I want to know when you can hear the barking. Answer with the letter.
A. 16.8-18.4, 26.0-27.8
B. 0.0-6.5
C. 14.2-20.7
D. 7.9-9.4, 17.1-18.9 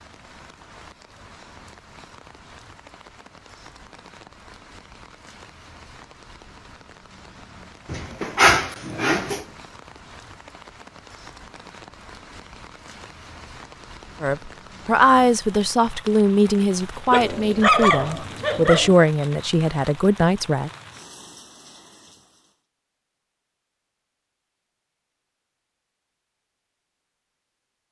D.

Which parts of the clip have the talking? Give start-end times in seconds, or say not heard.
14.2-20.7.